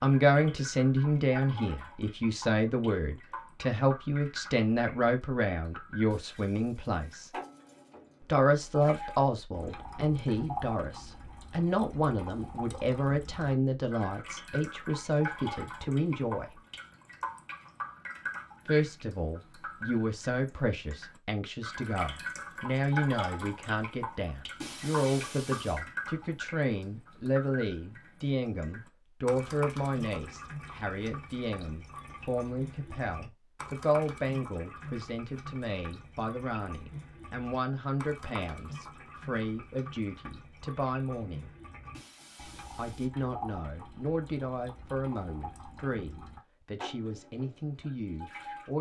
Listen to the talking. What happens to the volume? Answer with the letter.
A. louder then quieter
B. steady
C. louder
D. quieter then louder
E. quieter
E.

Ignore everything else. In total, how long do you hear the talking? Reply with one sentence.
The talking can be heard for 44 seconds in total.